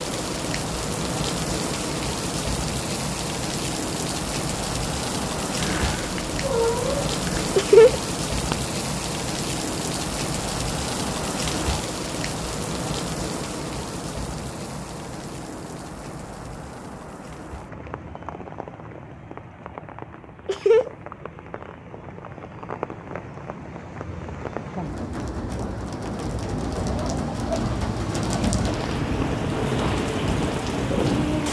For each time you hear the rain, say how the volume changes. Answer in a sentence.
You can hear the rain from 0.0 to 31.4 s, getting quieter then louder.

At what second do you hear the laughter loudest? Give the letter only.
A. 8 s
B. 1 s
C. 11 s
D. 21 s
A.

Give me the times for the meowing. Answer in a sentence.
You can hear the meowing from 5.5 to 7.5 s.